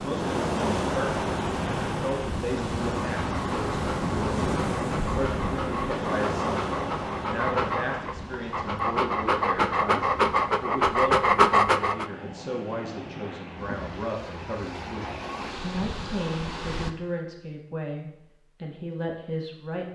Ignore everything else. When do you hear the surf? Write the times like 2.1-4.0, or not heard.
0.0-16.9.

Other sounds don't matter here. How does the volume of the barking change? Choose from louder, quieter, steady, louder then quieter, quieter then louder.
louder.